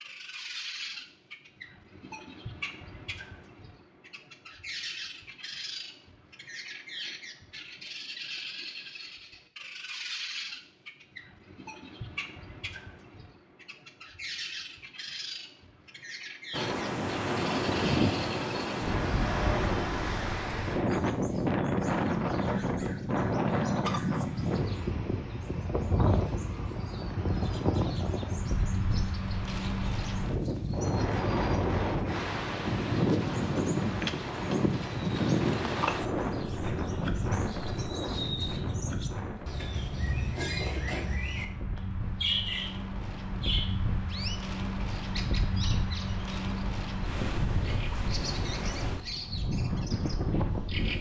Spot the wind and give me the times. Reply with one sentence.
The wind can be heard from 16.5 to 50.9 s.